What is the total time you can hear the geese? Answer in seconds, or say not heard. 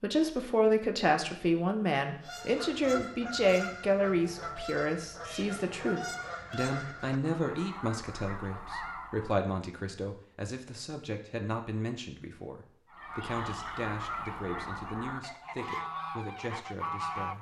12 s.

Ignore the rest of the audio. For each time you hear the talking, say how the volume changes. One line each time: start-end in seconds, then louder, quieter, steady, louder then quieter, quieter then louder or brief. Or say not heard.
0.0-17.3 quieter.